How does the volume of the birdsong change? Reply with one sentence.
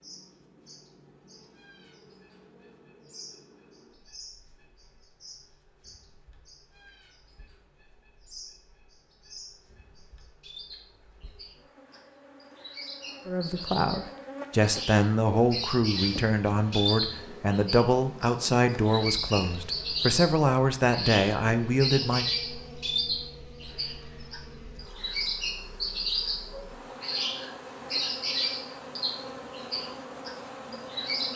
The loudness of the birdsong goes up.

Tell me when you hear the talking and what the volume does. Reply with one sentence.
The talking can be heard from 13.2 to 22.2 s, at a steady volume.